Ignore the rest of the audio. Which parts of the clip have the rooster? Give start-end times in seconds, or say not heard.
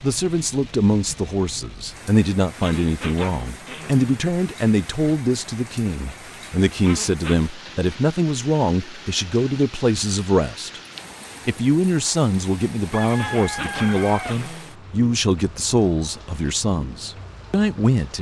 12.9-14.4.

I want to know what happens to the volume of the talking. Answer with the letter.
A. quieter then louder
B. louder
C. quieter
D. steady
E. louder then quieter
D.